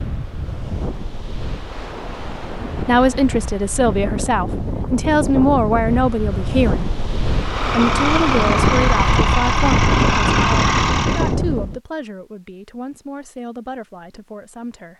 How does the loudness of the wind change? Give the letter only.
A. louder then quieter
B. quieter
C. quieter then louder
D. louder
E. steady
D.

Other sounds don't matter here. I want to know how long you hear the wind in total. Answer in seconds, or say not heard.
12 s.